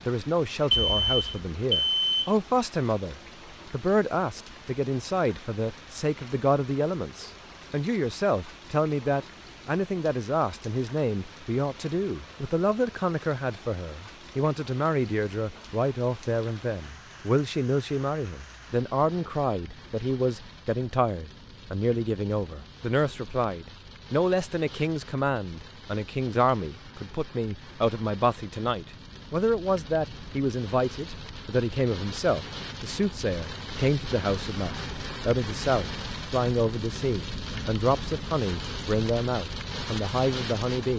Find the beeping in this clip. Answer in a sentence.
The beeping can be heard from 0.7 to 2.3 s.